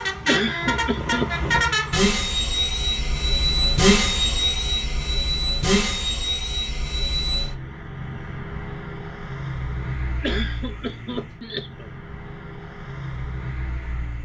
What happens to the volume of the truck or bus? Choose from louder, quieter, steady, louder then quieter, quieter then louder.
quieter.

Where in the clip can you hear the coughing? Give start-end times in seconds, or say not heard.
0.2-1.3, 10.2-11.9.